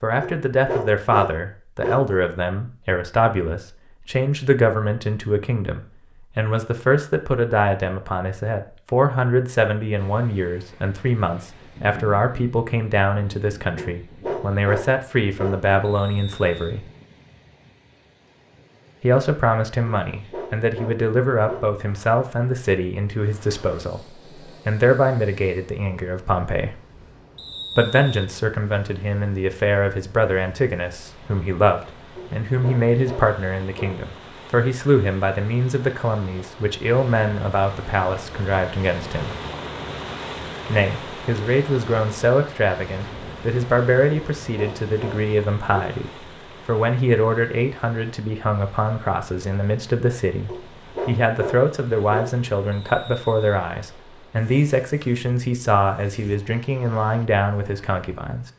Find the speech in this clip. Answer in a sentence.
The speech can be heard from 0.0 to 16.9 s, from 19.0 to 26.8 s, from 27.8 to 39.4 s and from 40.6 to 58.5 s.